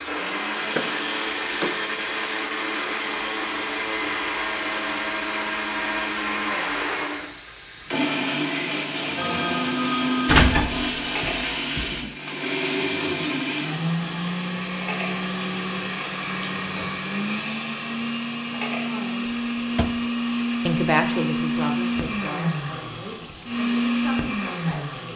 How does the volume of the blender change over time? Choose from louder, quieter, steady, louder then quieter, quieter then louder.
steady.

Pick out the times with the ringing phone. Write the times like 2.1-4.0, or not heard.
9.2-10.4.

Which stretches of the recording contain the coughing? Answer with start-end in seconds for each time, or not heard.
not heard.